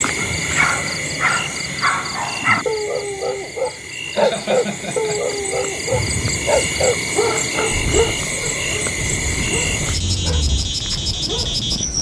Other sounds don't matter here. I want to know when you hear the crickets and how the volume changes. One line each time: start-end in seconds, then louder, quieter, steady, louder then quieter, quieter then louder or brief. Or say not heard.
0.0-11.9 quieter then louder.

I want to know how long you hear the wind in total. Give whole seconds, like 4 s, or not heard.
6 s.